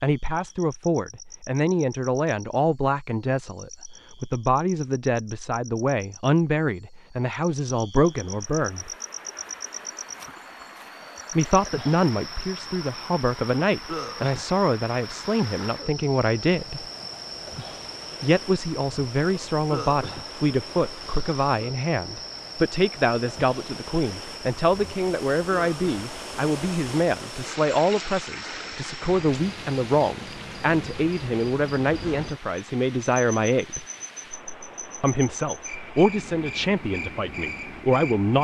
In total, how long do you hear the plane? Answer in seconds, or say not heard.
not heard.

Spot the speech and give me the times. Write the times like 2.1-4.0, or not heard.
0.0-8.9, 11.3-16.9, 18.2-33.9, 35.0-38.3.